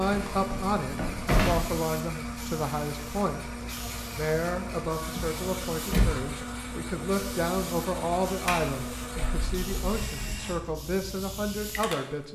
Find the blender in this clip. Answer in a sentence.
The blender can be heard from 0.0 to 10.6 s.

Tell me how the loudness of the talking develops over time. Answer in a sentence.
The loudness of the talking stays about the same.